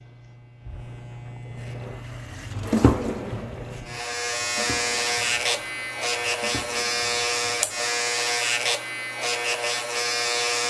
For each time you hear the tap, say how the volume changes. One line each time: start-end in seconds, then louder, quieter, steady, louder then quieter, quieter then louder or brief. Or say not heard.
1.4-8.1 quieter.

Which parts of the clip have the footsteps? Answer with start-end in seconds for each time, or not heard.
not heard.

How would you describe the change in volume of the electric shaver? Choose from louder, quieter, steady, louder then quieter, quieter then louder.
louder.